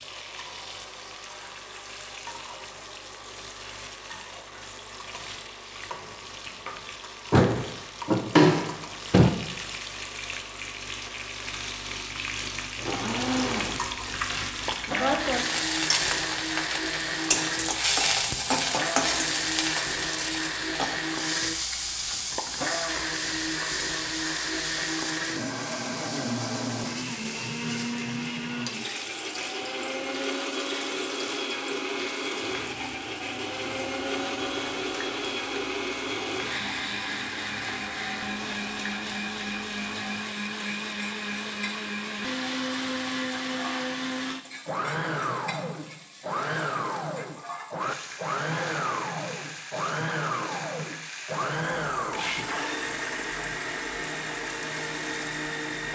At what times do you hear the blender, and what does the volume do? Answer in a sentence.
The blender can be heard from 0.0 to 55.8 s, getting louder.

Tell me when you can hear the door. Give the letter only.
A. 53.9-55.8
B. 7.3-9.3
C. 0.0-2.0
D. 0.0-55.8
B.